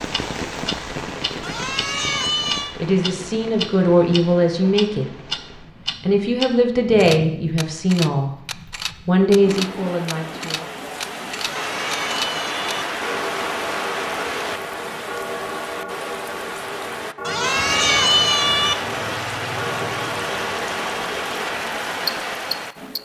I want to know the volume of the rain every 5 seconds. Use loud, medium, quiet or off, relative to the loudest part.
medium, medium, loud, loud, loud.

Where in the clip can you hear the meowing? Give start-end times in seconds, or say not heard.
1.4-2.8, 11.3-12.8, 17.2-18.8.